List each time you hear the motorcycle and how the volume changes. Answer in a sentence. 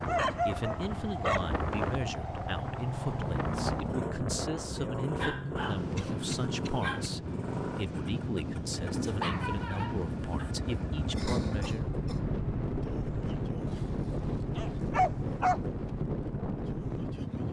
You can hear the motorcycle from 0.0 to 17.4 s, at a steady volume.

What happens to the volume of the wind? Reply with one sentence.
The loudness of the wind stays about the same.